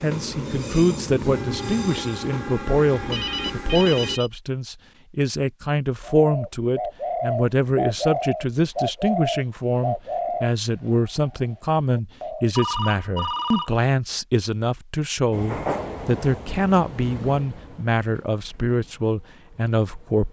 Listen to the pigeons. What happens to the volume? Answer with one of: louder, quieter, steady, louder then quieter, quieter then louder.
quieter.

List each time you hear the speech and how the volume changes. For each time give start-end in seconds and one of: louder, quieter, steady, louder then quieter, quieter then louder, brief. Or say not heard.
0.0-20.2 steady.